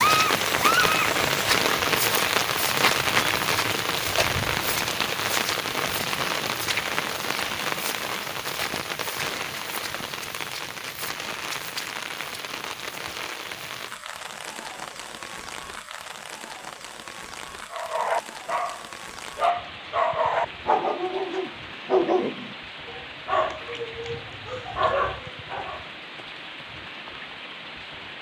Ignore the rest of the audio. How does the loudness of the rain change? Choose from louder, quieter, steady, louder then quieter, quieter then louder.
quieter.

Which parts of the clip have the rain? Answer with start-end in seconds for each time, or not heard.
0.0-28.1.